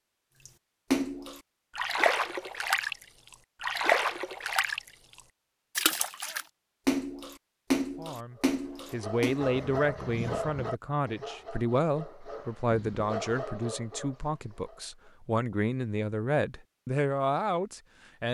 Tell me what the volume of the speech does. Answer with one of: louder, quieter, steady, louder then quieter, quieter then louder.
steady.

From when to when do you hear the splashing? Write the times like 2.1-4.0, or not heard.
0.5-3.0, 3.6-4.8, 5.8-9.4.